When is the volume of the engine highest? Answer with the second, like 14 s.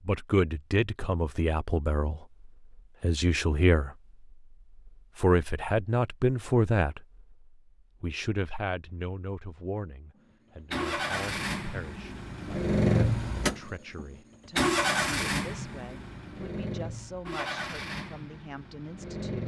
13 s.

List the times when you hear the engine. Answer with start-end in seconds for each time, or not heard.
10.7-19.4.